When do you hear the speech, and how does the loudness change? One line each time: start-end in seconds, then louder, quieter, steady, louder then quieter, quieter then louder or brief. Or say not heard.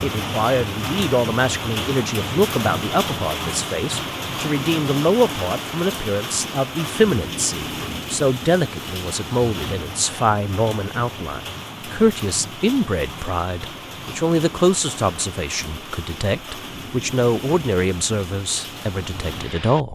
0.0-19.9 steady.